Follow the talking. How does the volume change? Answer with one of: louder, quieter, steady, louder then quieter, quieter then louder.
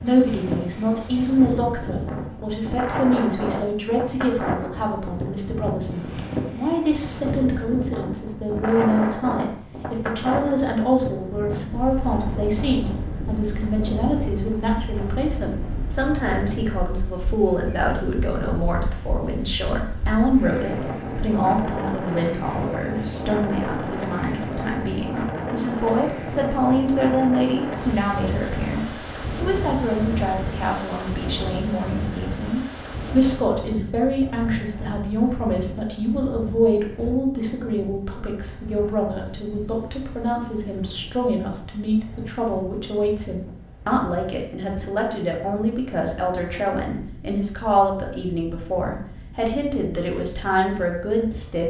steady.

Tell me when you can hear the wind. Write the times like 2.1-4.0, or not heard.
0.0-51.6.